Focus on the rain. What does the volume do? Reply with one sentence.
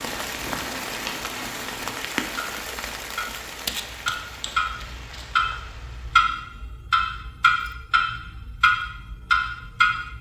The loudness of the rain goes down.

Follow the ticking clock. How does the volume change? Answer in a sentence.
The volume of the ticking clock goes up.